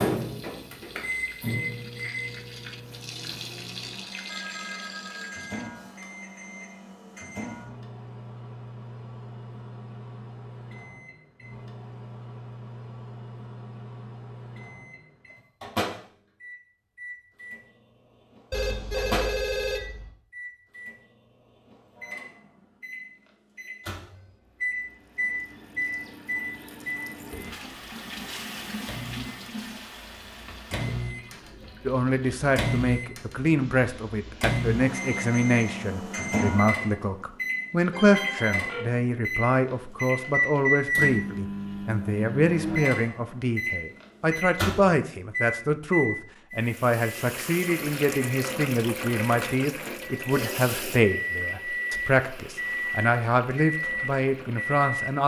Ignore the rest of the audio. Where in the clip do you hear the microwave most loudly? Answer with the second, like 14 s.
41 s.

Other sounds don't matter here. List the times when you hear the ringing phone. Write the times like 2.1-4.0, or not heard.
4.2-6.1, 18.5-20.1, 37.9-38.9.